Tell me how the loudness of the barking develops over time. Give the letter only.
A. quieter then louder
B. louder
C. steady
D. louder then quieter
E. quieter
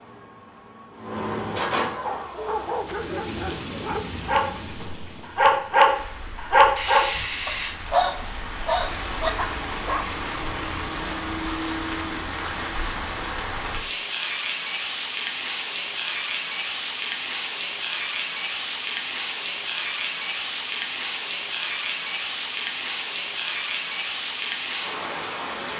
D.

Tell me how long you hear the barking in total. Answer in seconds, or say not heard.
8 s.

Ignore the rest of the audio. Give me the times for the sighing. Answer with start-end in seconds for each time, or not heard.
6.8-7.8.